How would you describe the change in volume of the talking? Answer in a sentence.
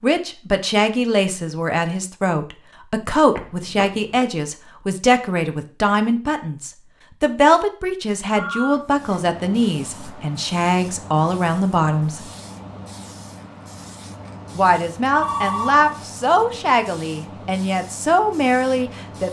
The loudness of the talking stays about the same.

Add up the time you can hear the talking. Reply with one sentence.
You can hear the talking for 17 seconds altogether.